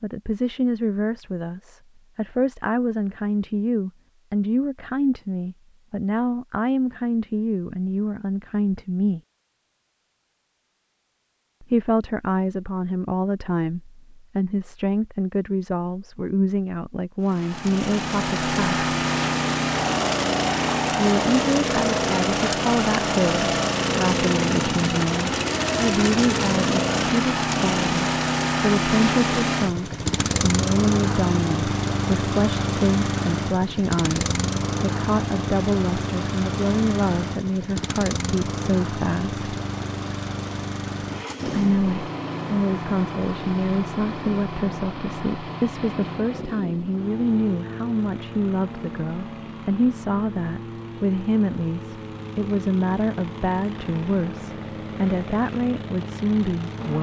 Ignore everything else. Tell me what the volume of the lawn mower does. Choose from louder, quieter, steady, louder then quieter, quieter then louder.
quieter.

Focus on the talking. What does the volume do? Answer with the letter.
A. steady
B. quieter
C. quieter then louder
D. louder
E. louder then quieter
A.